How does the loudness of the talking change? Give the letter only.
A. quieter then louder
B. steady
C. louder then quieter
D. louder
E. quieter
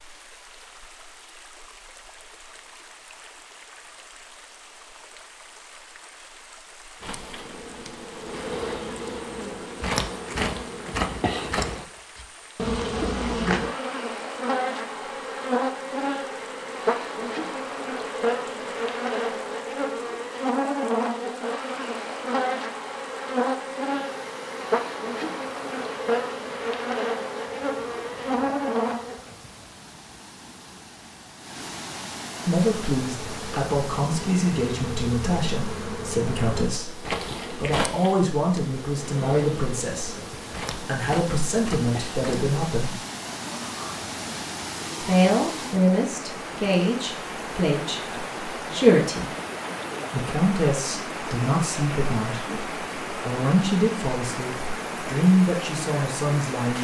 B.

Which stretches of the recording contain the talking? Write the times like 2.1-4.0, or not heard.
32.5-43.0, 45.0-49.3, 50.1-56.8.